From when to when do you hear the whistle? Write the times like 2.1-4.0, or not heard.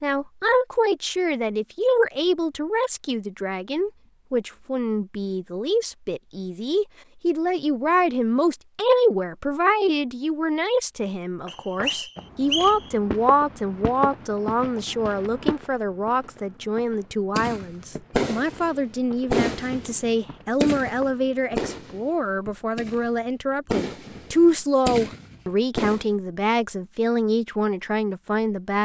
11.4-12.9.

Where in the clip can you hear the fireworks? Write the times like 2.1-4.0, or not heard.
17.4-26.1.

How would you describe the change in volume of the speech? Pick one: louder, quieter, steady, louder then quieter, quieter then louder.
steady.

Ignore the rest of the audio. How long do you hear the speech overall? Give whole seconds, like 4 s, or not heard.
29 s.